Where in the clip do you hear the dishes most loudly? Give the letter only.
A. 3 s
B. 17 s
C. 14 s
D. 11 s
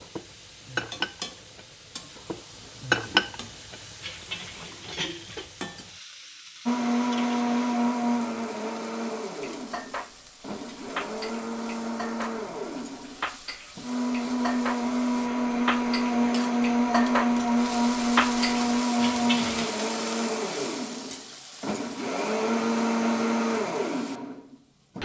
A.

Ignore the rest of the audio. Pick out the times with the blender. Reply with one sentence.
You can hear the blender from 6.7 to 25.0 s.